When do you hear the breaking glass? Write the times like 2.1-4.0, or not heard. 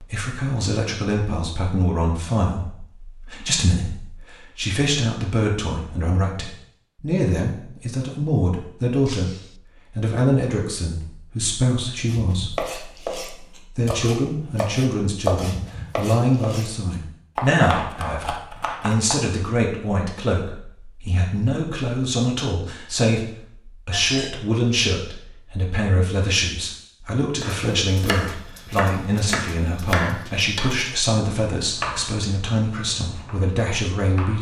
9.1-9.6, 23.9-24.4.